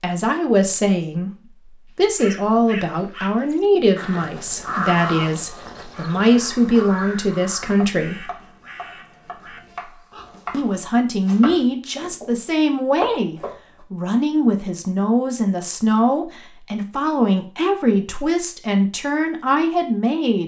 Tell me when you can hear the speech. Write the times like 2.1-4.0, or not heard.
0.0-8.3, 10.5-20.4.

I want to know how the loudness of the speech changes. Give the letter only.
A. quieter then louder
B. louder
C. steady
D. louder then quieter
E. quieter
C.